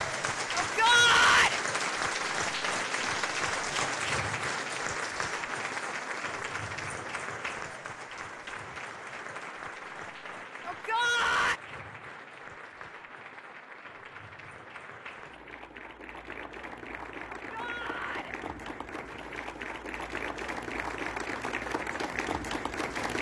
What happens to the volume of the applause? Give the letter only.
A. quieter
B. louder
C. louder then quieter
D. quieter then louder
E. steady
D.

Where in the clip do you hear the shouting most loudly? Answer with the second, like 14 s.
1 s.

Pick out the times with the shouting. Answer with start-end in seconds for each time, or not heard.
0.6-1.6, 10.7-11.6, 17.4-18.4.